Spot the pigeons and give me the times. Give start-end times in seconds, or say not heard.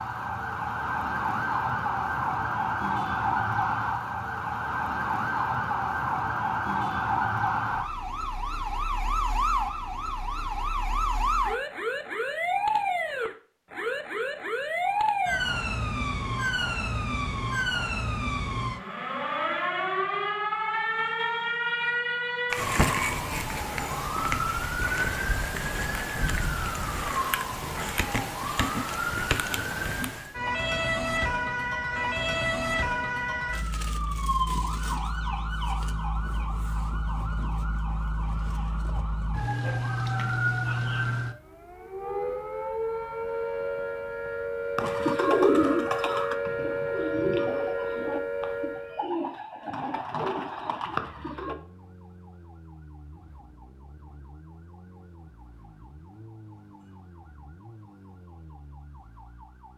44.8-51.5.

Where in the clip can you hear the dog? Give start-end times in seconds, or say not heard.
not heard.